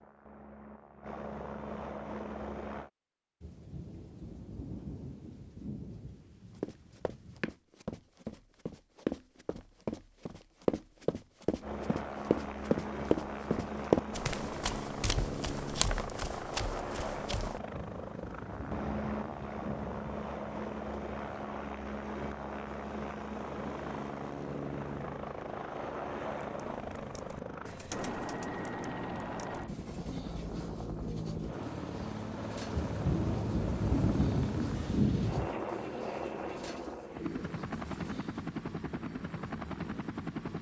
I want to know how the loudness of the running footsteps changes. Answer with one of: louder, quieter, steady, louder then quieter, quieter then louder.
louder then quieter.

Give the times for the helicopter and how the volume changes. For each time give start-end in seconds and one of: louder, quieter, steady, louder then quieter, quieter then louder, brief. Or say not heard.
0.0-2.9 brief
11.6-40.5 steady.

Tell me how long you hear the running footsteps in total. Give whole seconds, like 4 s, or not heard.
11 s.